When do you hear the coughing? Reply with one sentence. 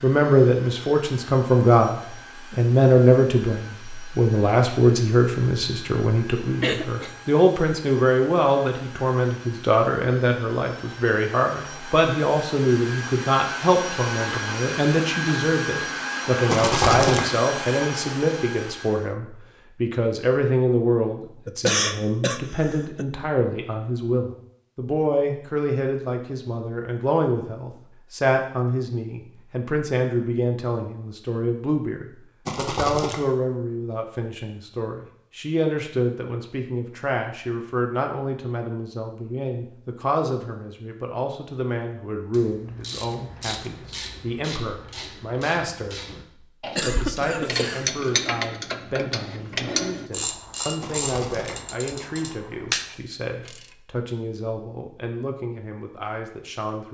The coughing can be heard from 6.6 to 7.1 s, from 21.4 to 23.1 s and from 46.8 to 47.9 s.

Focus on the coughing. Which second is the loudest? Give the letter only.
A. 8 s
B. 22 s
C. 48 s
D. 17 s
B.